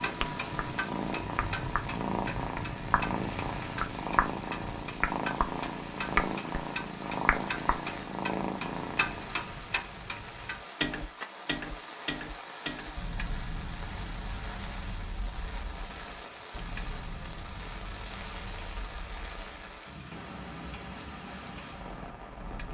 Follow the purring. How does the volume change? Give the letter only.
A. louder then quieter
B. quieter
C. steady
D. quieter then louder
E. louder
C.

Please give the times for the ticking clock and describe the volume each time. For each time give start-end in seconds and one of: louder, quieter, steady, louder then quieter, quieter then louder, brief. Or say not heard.
0.0-22.6 quieter.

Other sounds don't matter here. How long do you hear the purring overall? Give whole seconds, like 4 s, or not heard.
9 s.